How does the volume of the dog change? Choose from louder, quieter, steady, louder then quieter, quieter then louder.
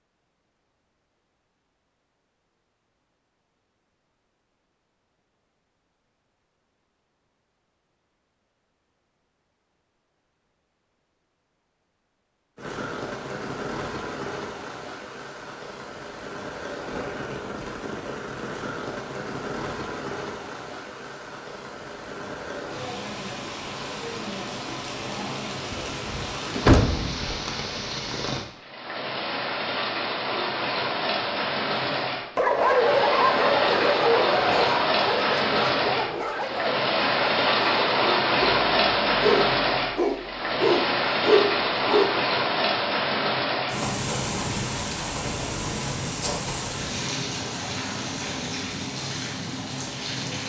quieter then louder.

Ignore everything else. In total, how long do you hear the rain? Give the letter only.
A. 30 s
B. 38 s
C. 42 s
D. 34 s
B.